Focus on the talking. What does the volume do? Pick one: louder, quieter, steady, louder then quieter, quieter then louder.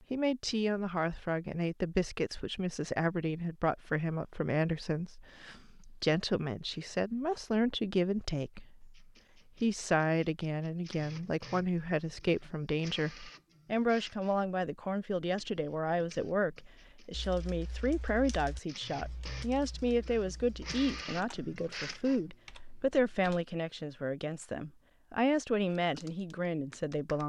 steady.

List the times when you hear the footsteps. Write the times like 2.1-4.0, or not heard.
not heard.